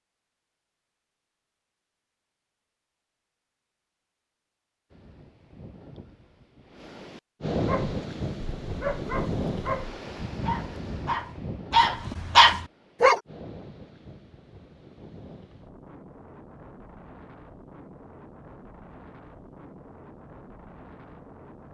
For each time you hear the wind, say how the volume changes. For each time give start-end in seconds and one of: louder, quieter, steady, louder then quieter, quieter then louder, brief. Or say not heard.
4.9-21.6 quieter.